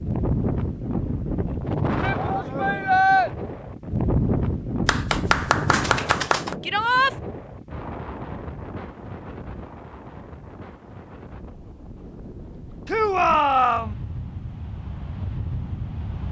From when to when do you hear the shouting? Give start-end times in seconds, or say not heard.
2.0-3.3, 6.6-7.2, 12.8-13.9.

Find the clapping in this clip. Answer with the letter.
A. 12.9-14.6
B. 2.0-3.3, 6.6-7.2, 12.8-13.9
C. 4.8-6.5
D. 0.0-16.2
C.